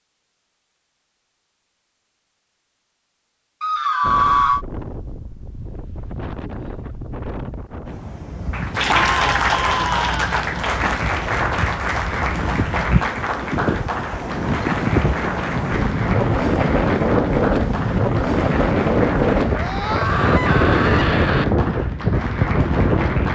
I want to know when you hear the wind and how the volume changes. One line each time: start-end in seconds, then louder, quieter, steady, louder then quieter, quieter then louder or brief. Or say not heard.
4.0-23.3 louder.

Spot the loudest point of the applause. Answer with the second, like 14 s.
9 s.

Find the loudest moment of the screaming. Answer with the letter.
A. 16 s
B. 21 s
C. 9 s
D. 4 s
D.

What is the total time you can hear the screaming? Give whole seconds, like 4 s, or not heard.
4 s.